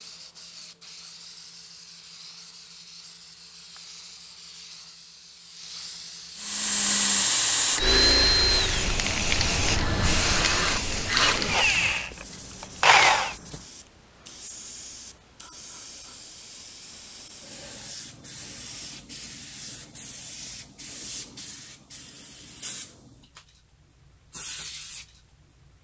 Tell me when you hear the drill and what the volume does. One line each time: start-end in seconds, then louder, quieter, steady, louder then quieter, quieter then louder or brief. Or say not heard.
6.3-13.3 quieter then louder.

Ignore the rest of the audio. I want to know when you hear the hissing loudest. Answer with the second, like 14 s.
10 s.